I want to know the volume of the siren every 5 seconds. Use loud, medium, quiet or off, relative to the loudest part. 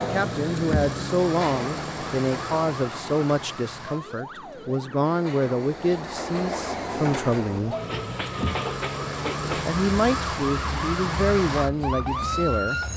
medium, medium, loud.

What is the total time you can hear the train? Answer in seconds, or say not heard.
13 s.